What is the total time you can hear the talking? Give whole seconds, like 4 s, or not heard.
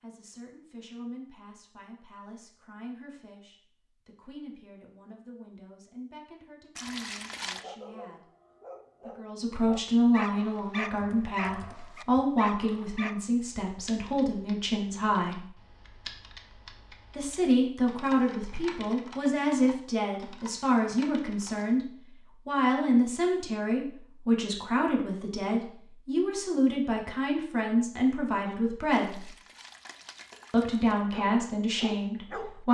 29 s.